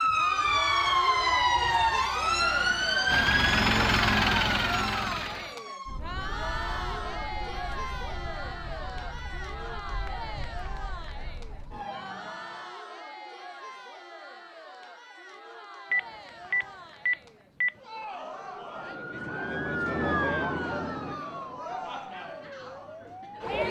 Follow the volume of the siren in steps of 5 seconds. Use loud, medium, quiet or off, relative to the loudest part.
loud, quiet, quiet, medium, medium.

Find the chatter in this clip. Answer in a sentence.
You can hear the chatter from 0.0 to 23.6 s.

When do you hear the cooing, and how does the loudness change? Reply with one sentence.
The cooing can't be heard in this clip.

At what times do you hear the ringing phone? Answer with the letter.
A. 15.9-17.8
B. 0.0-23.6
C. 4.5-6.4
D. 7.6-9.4
A.